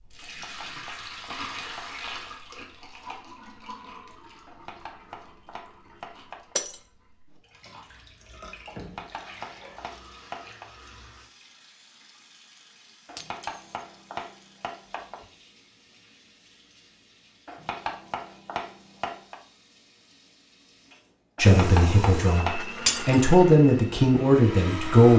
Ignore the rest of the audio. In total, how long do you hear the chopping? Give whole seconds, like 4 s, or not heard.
12 s.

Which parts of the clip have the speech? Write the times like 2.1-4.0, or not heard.
21.4-25.1.